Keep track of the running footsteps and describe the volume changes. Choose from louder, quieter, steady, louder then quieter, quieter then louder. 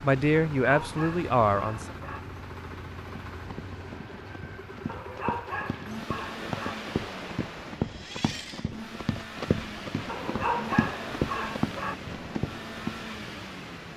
louder.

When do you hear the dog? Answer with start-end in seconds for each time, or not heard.
0.6-2.2, 4.8-6.8, 10.1-11.9.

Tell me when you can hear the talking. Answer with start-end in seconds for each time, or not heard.
0.0-1.9.